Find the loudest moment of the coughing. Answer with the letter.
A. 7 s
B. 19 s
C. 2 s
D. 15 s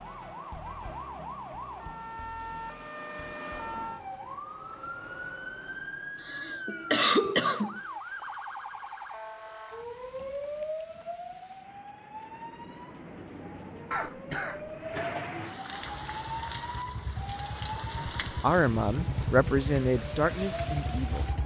A.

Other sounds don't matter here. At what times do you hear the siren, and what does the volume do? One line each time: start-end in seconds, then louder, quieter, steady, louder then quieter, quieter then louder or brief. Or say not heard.
0.0-21.4 steady.